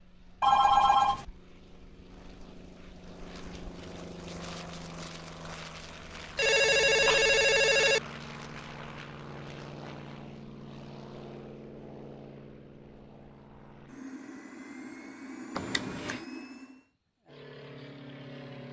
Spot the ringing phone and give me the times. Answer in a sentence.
You can hear the ringing phone from 0.4 to 1.2 s, from 6.3 to 8.0 s and from 15.6 to 16.2 s.